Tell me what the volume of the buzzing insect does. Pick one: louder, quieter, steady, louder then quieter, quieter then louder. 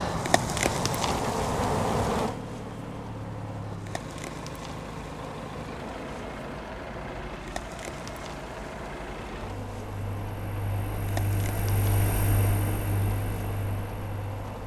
quieter.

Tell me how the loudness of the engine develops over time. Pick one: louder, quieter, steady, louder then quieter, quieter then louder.
louder.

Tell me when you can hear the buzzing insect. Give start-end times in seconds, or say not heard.
0.0-14.6.